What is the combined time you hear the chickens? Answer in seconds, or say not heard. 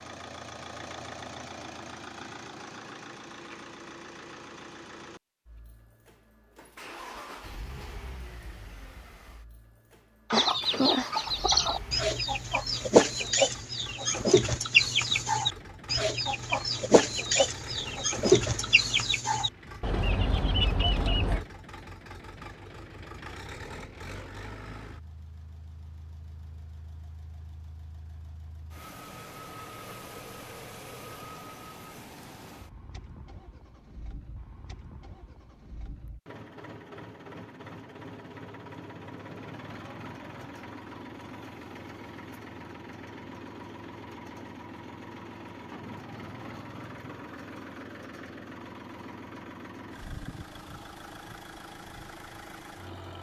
11 s.